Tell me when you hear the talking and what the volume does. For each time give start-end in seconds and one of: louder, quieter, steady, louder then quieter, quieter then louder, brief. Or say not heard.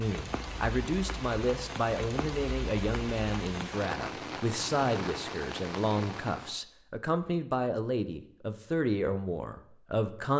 0.0-10.3 steady.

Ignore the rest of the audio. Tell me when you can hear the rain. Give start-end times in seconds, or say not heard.
0.0-6.6.